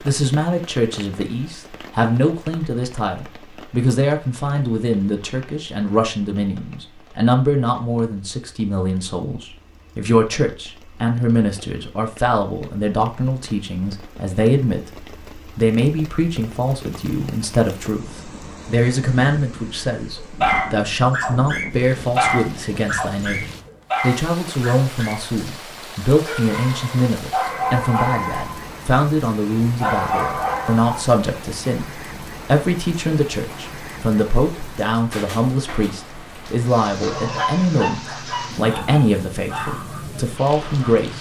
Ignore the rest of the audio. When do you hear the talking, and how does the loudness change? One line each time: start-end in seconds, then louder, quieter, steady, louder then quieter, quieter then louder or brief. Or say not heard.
0.0-41.1 steady.